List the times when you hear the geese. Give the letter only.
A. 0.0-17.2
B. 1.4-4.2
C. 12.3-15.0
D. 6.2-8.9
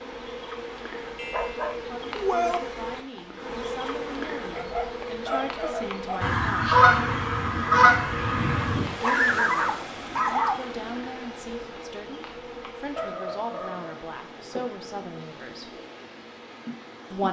D.